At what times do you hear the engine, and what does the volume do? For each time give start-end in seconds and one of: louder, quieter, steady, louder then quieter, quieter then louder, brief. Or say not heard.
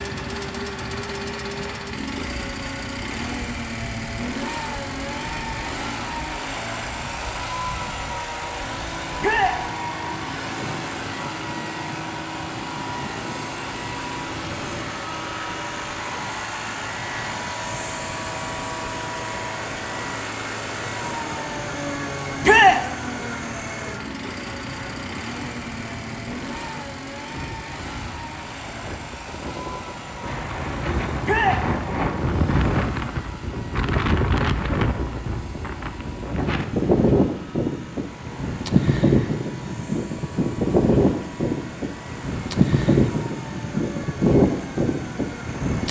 0.0-45.8 quieter.